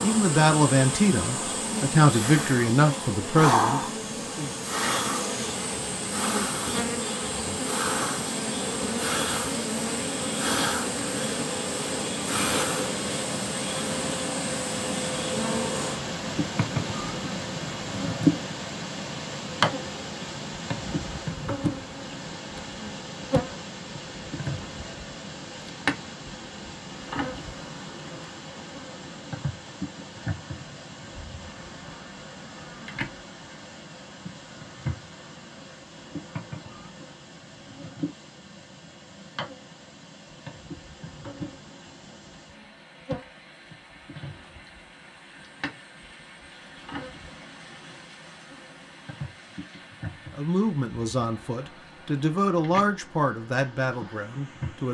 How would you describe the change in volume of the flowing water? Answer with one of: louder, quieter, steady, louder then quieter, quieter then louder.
quieter.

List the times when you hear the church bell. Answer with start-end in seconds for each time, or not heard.
not heard.